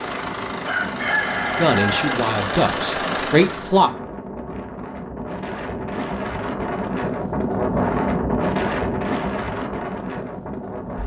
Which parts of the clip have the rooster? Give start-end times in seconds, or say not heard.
0.7-2.1.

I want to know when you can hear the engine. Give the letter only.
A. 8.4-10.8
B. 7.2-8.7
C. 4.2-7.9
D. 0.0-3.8
D.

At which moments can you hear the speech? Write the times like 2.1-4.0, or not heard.
1.6-3.9.